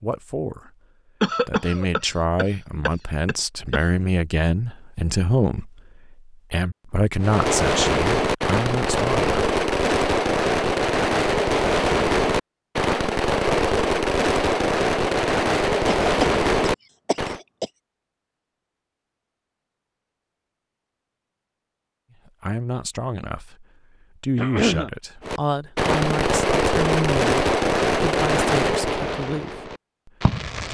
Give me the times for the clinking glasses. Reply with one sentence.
The clinking glasses can't be heard in this clip.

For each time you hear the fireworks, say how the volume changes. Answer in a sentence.
You can hear the fireworks from 7.2 to 17.4 s, at a steady volume; and from 25.2 to 30.6 s, getting quieter.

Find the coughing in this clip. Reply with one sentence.
The coughing can be heard from 1.2 to 3.8 s, from 15.8 to 17.7 s and from 24.4 to 24.9 s.